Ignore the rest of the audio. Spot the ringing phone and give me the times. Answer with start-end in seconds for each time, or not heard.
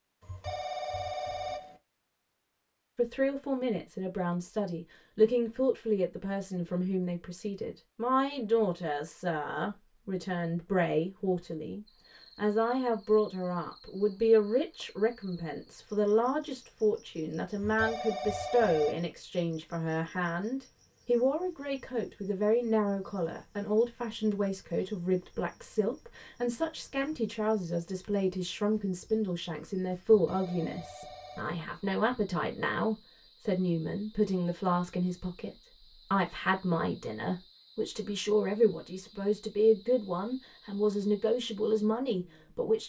0.2-1.8, 17.6-19.0, 30.1-31.6.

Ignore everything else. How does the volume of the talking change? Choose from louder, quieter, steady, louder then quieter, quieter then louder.
steady.